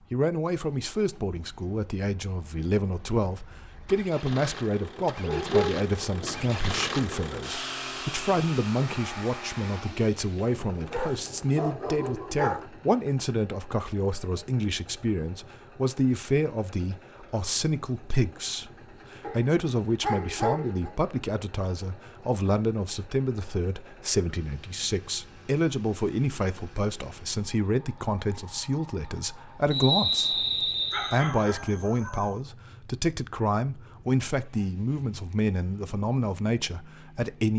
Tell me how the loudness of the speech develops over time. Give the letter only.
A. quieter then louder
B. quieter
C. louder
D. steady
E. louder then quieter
D.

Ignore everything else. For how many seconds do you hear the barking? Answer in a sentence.
You can hear the barking for 7 seconds altogether.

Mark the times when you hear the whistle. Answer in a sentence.
The whistle can be heard from 29.7 to 31.2 s.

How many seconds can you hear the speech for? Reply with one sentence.
The speech can be heard for 37 seconds in total.